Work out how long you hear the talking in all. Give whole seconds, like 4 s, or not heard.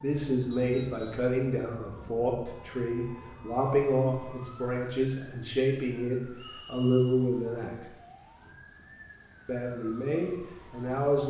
10 s.